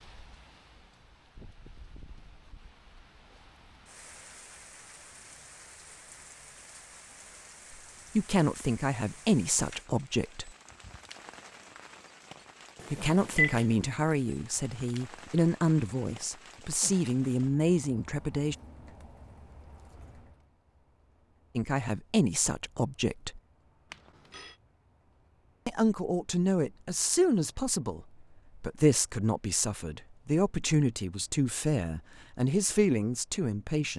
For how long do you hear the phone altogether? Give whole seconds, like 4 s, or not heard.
2 s.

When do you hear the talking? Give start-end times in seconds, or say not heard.
8.2-10.5, 12.9-18.6, 21.6-23.4, 25.6-33.9.